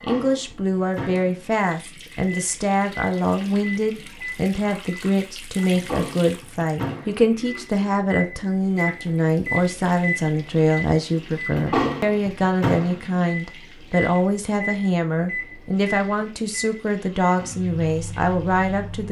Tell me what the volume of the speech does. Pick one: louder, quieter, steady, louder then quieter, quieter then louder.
steady.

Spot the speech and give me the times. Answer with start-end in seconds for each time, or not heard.
0.0-19.0.